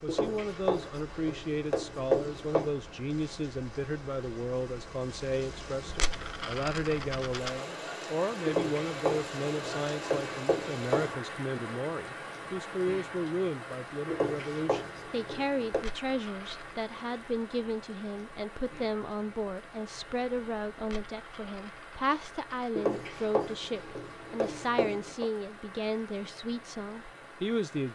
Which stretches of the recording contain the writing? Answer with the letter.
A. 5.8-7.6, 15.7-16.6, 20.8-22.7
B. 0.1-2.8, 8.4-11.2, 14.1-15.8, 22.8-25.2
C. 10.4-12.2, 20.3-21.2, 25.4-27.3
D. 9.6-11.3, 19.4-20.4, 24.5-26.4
B.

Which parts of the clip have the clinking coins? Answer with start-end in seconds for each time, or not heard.
5.8-7.6, 15.7-16.6, 20.8-22.7.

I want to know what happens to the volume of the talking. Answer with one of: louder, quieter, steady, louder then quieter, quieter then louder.
steady.